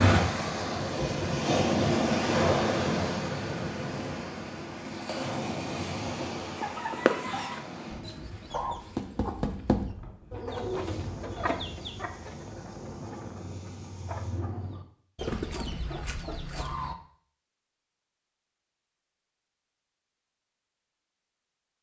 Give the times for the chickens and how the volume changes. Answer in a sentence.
The chickens can be heard from 6.5 to 16.9 s, getting quieter then louder.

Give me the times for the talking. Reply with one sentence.
You can't hear the talking here.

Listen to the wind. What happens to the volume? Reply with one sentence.
The volume of the wind goes down.